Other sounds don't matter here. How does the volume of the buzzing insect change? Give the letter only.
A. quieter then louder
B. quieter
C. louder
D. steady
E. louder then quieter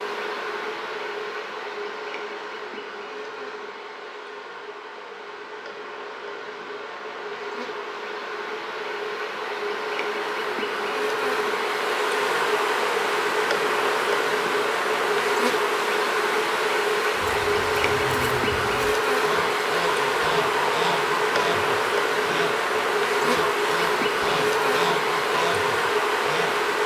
C.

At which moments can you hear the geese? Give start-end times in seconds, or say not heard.
17.1-26.6.